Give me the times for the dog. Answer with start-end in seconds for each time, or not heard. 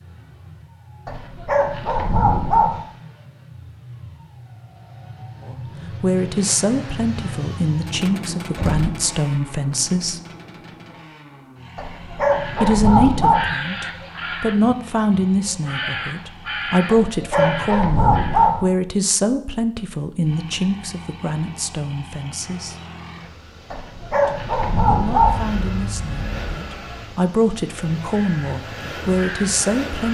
1.1-2.8, 11.8-13.5, 16.9-18.6, 23.7-25.4.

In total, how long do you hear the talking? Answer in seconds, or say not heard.
21 s.